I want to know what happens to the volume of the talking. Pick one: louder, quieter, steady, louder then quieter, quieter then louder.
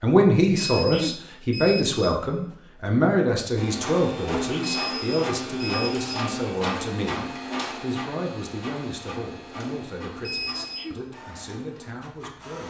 quieter.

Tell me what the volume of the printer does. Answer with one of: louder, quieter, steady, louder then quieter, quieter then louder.
quieter.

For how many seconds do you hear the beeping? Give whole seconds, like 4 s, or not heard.
4 s.